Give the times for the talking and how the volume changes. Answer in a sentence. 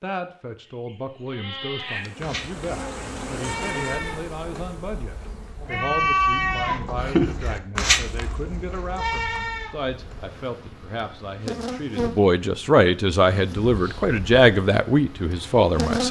You can hear the talking from 0.0 to 16.0 s, getting louder.